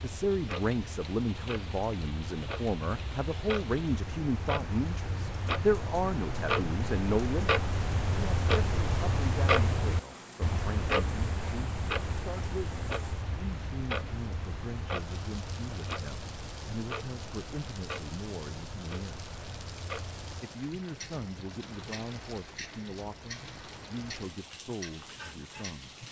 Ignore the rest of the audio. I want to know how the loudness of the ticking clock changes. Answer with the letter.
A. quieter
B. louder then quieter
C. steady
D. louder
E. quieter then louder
B.